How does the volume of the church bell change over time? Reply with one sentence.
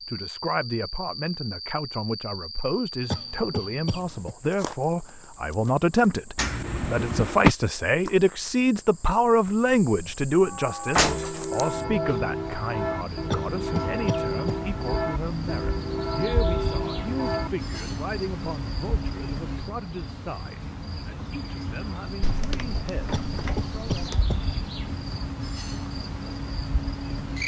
The volume of the church bell stays about the same.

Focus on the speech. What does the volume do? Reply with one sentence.
The volume of the speech goes up, then down.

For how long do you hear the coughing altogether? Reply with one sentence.
The coughing can be heard for 4 seconds in total.